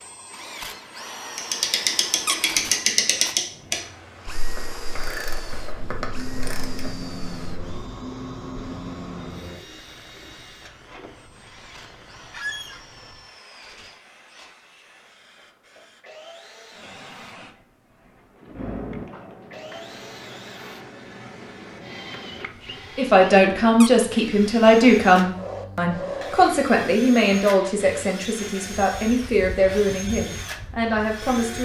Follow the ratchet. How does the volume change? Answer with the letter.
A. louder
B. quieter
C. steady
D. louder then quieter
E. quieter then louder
B.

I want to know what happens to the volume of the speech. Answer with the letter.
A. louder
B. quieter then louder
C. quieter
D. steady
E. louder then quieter
C.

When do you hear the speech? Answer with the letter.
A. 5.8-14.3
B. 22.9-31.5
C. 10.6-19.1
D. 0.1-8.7
B.